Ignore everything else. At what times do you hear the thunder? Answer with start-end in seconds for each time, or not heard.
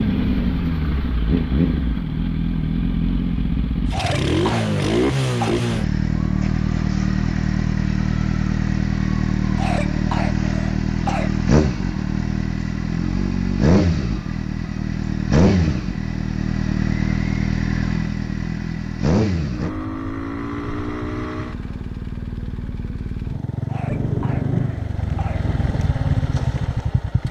23.9-25.8.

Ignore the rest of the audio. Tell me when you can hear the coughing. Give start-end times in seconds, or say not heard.
3.9-5.6, 9.6-11.3, 23.6-25.4.